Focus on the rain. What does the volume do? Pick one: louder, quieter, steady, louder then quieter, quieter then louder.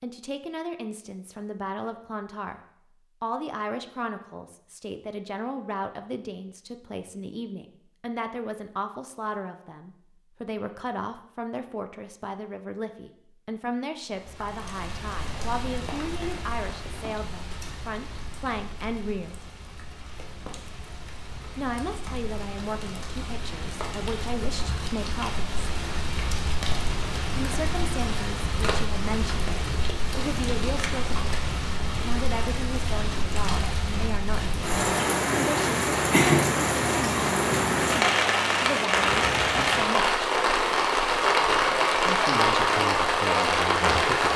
louder.